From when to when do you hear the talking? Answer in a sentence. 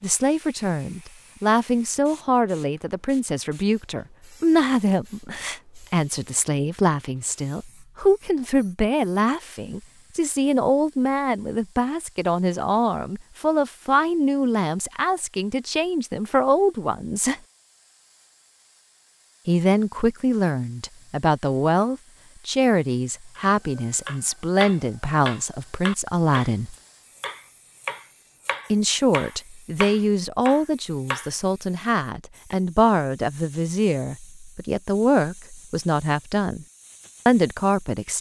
You can hear the talking from 0.0 to 17.4 s, from 19.4 to 26.8 s, from 28.7 to 36.6 s and from 37.2 to 38.1 s.